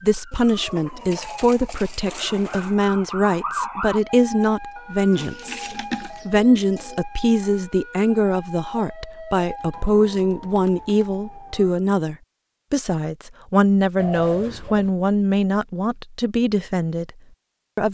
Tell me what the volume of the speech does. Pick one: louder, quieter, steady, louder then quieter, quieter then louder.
steady.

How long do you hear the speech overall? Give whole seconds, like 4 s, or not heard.
17 s.